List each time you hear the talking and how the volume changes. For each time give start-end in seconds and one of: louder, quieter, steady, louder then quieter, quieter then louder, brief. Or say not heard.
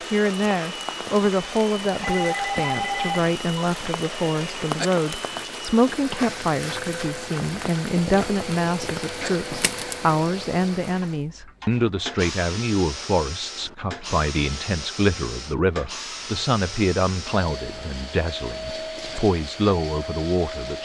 0.1-20.8 steady.